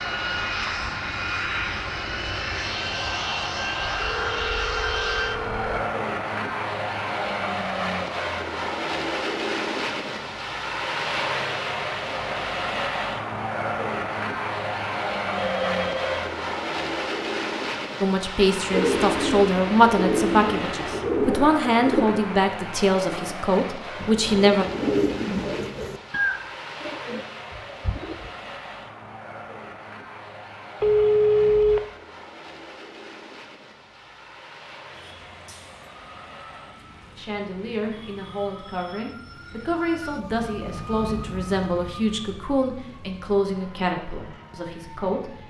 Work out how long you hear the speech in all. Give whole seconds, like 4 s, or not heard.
15 s.